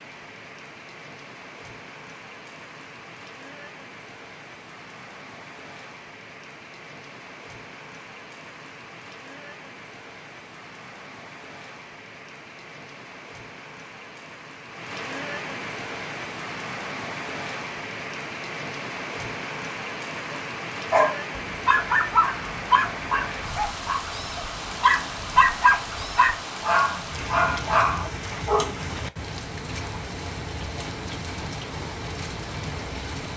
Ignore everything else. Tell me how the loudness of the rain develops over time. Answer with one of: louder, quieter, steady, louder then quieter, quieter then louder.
louder.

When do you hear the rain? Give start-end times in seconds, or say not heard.
0.0-33.3.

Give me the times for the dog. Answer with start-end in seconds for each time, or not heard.
20.3-28.7.